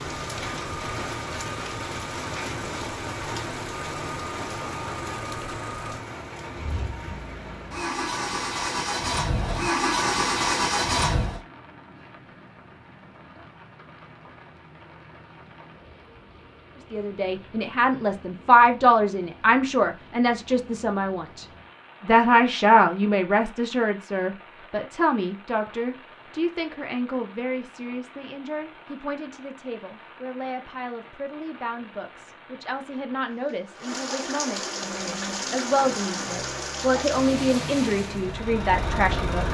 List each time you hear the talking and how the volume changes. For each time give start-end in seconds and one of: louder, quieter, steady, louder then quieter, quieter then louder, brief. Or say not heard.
16.9-39.4 quieter then louder.